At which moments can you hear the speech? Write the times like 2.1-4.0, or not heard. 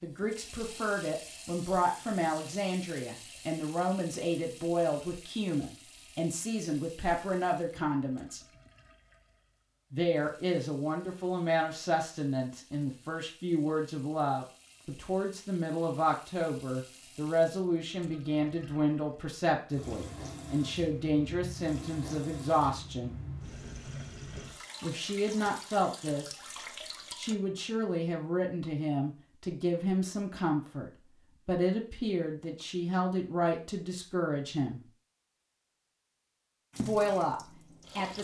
0.0-8.4, 9.9-23.1, 24.8-26.4, 27.1-34.9, 36.8-38.1.